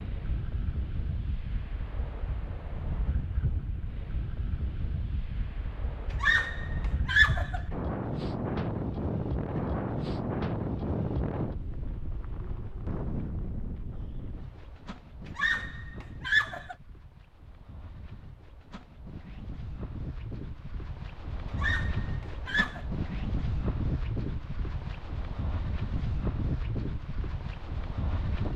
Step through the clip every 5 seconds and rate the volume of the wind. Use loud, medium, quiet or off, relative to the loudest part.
medium, loud, loud, quiet, loud, loud.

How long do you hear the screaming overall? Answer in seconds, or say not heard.
4 s.